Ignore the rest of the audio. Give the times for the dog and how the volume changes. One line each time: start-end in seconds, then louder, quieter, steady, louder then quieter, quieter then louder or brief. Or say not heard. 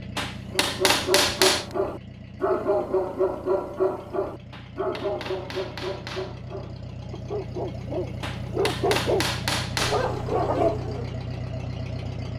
0.5-11.2 quieter then louder.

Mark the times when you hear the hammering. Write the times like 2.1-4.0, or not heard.
0.1-1.6, 4.5-6.4, 8.2-10.1.